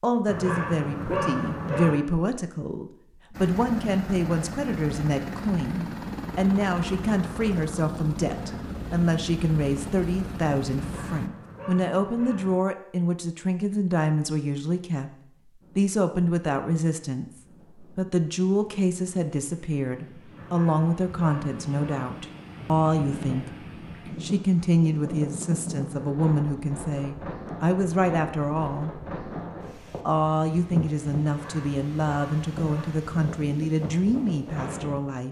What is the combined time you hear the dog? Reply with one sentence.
The dog can be heard for 7 seconds in total.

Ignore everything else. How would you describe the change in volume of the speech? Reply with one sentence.
The volume of the speech stays about the same.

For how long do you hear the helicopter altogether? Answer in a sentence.
The helicopter can be heard for 8 seconds in total.